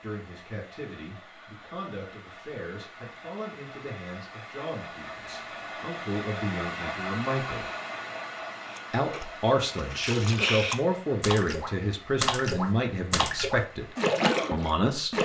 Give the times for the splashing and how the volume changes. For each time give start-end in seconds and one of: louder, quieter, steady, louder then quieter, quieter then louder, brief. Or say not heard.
8.7-15.2 louder.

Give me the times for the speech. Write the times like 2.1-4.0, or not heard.
0.0-7.7, 8.9-13.8, 14.5-15.2.